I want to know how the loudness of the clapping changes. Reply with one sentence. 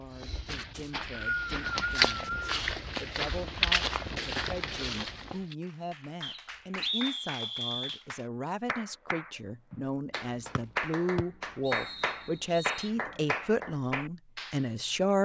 The volume of the clapping goes up.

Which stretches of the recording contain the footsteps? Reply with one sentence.
The footsteps can be heard from 0.0 to 5.5 s.